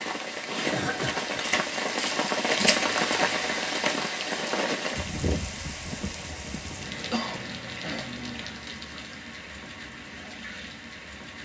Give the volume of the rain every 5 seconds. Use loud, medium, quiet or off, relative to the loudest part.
loud, medium, quiet.